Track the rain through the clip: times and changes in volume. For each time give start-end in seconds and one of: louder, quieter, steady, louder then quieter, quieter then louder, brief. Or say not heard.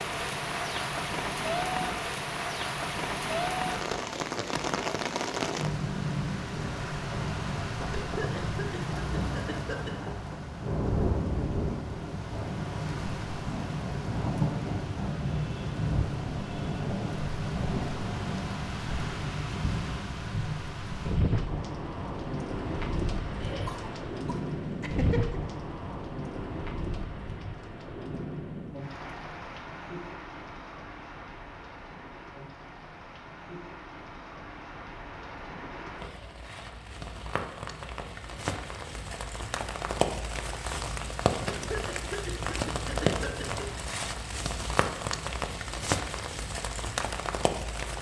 0.0-47.9 quieter then louder.